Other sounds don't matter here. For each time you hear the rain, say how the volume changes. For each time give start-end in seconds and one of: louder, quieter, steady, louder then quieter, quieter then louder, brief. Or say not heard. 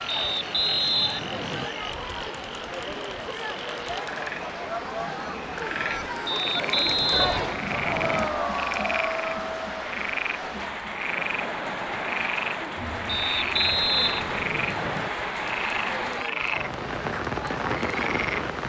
0.0-18.6 louder.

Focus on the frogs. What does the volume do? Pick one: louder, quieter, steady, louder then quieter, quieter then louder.
louder.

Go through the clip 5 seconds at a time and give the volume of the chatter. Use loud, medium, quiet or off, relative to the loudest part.
medium, loud, medium, medium.